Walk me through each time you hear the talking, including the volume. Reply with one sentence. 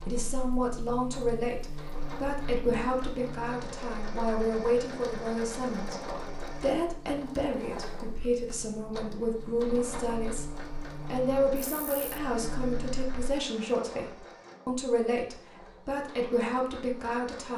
You can hear the talking from 0.0 to 10.5 s, at a steady volume; and from 11.1 to 17.5 s, at a steady volume.